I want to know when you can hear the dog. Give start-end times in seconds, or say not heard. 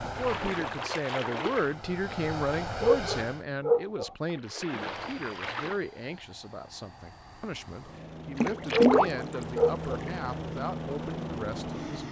2.8-4.1, 8.7-10.0.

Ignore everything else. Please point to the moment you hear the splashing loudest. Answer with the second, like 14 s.
9 s.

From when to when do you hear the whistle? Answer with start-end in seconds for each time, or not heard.
not heard.